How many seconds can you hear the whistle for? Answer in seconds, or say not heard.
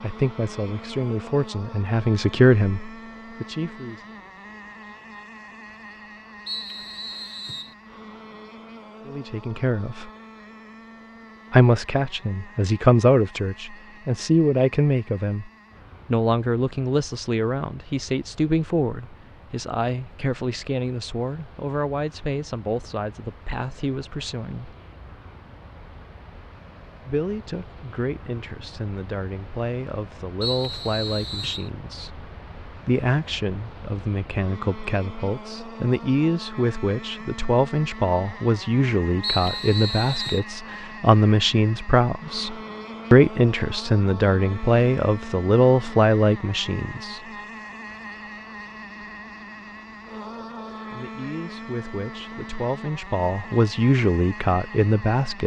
4 s.